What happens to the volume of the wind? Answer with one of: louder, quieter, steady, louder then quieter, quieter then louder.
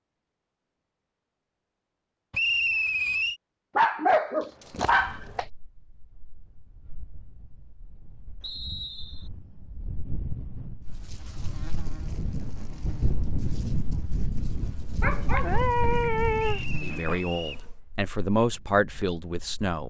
louder then quieter.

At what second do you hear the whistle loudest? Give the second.
3 s.